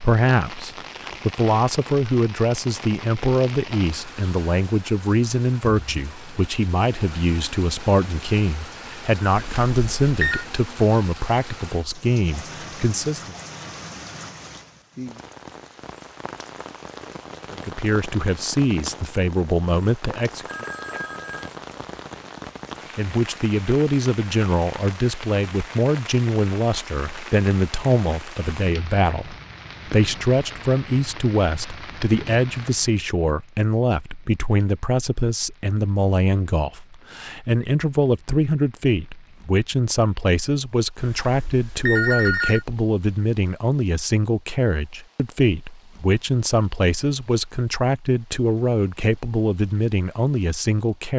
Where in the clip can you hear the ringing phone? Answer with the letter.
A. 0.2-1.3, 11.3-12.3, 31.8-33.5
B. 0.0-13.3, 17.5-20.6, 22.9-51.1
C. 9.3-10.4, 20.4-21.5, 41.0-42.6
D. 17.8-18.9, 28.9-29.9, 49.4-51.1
C.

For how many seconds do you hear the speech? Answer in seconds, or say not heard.
45 s.